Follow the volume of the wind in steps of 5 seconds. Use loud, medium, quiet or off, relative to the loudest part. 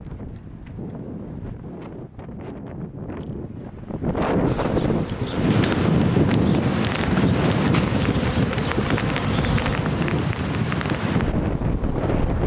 medium, loud, loud.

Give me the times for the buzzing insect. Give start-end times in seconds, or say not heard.
4.5-10.2.